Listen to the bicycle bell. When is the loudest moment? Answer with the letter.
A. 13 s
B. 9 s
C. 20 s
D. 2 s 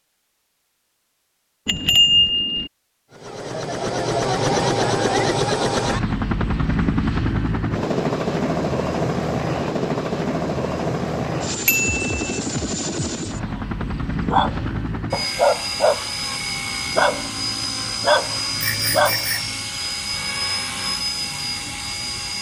D.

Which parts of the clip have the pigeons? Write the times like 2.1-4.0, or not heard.
not heard.